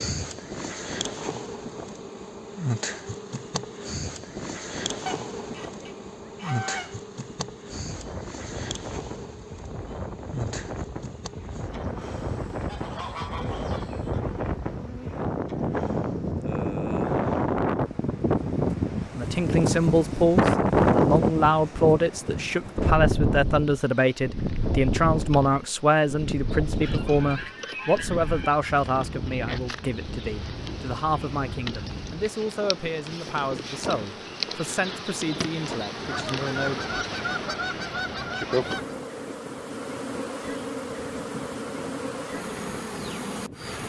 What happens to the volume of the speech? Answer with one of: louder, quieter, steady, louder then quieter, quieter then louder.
quieter.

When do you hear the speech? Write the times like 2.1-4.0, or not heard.
19.1-37.4.